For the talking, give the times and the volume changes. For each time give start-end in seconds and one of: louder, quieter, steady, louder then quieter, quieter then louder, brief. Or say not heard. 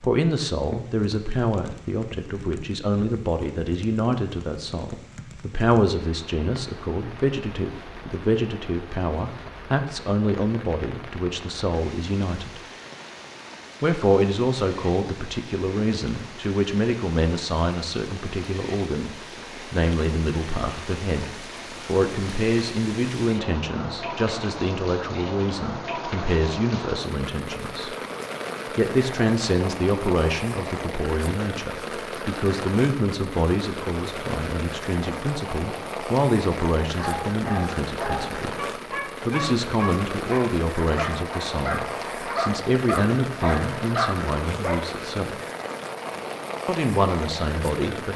0.0-12.6 steady
13.8-27.9 steady
28.8-45.4 steady
46.6-48.1 brief.